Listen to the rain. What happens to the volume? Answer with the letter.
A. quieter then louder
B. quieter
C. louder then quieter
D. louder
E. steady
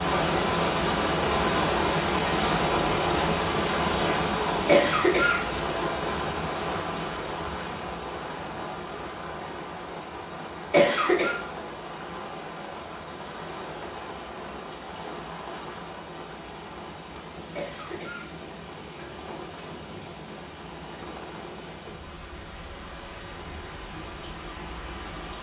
B.